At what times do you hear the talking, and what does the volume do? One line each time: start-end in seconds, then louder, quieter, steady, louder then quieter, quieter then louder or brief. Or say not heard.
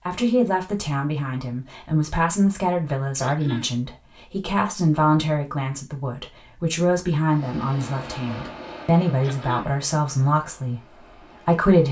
0.1-11.8 steady.